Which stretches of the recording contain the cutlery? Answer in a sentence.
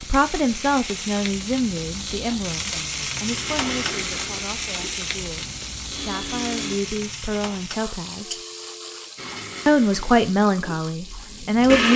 You can't hear the cutlery here.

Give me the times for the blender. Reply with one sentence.
You can hear the blender from 3.2 to 6.8 s and from 9.2 to 11.9 s.